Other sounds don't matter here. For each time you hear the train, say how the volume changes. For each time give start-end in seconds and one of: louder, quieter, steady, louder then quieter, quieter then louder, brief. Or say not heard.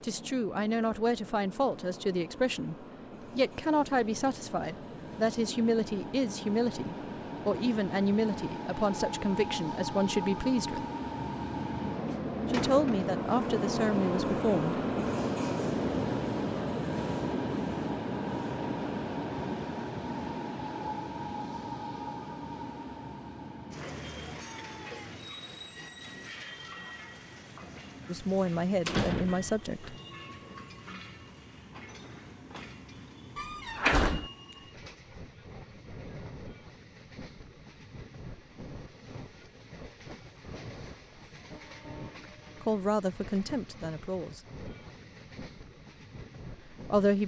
0.0-47.2 louder then quieter.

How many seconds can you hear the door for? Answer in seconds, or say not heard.
3 s.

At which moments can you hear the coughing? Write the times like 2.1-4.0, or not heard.
not heard.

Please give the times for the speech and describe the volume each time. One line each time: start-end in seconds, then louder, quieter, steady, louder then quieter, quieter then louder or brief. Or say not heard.
0.0-10.8 steady
12.5-14.8 brief
28.1-29.9 brief
42.6-44.5 brief
46.7-47.2 brief.